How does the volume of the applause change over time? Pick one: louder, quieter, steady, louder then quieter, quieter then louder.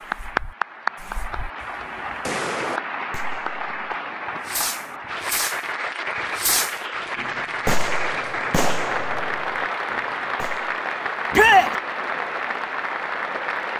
steady.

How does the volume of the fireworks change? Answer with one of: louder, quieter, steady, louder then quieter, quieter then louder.
louder then quieter.